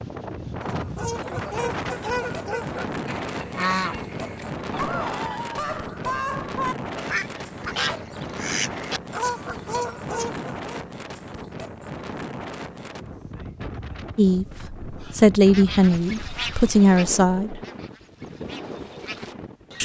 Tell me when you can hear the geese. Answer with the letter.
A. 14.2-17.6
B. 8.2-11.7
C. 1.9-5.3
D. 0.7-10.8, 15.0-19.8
D.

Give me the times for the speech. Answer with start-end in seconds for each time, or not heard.
14.2-17.6.